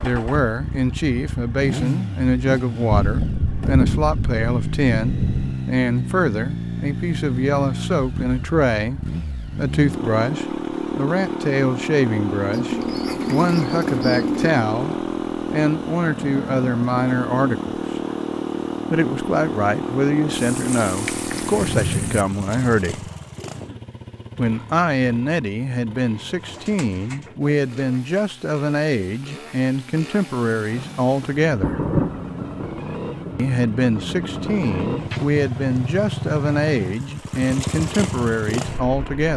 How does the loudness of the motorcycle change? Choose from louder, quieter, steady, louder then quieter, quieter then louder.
quieter then louder.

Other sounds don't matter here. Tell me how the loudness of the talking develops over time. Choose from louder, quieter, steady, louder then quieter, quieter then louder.
steady.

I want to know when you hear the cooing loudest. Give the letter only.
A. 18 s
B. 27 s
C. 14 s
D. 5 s
C.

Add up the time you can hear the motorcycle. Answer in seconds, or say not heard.
39 s.